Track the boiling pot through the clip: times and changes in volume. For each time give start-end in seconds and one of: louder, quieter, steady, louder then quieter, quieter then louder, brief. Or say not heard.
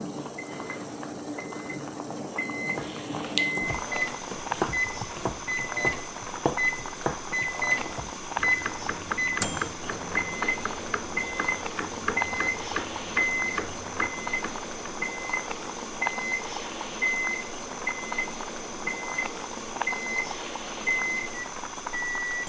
0.0-22.4 steady.